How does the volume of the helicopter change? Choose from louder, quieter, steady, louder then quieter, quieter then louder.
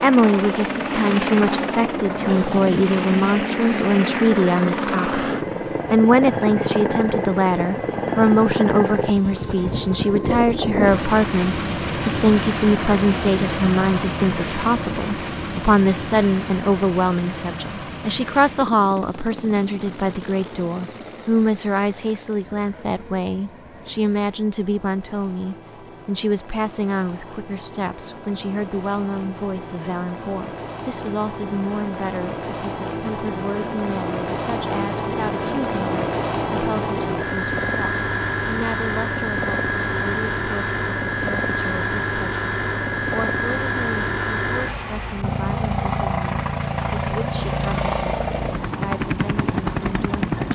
quieter then louder.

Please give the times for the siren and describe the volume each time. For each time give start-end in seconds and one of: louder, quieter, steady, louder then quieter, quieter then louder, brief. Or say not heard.
not heard.